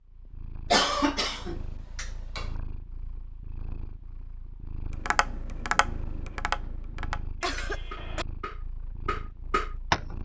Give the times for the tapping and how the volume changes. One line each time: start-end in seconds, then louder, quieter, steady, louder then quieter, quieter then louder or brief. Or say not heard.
5.0-10.2 quieter then louder.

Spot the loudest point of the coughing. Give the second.
1 s.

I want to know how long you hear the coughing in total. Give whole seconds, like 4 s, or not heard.
3 s.